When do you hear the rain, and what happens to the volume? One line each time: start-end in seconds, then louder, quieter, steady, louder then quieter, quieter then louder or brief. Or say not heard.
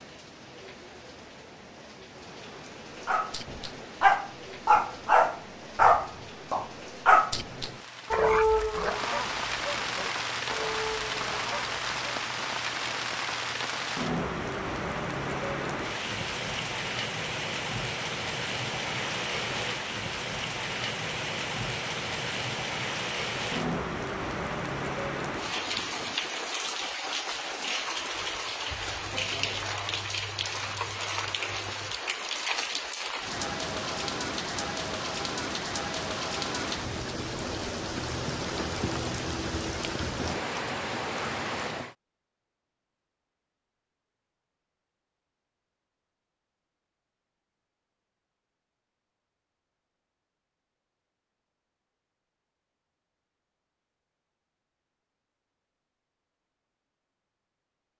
0.0-42.0 louder.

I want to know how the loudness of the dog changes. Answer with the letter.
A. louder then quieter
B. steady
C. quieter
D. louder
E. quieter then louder
C.